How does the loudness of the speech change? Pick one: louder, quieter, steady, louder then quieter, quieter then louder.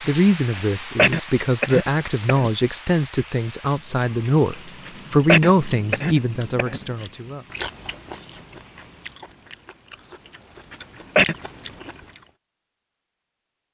louder then quieter.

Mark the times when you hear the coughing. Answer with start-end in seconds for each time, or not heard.
0.6-2.5, 4.8-6.8, 10.7-11.3.